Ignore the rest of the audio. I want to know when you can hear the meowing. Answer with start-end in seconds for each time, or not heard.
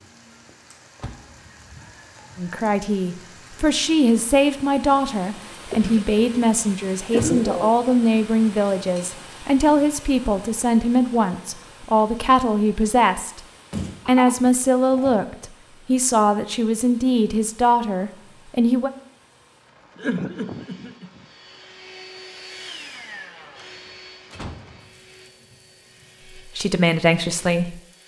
not heard.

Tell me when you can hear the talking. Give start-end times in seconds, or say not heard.
2.4-13.4, 14.1-18.9, 26.4-27.8.